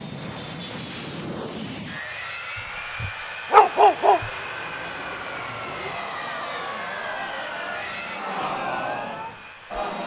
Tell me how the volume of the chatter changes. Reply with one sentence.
The loudness of the chatter goes up.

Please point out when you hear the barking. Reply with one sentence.
You can hear the barking from 3.0 to 4.3 s.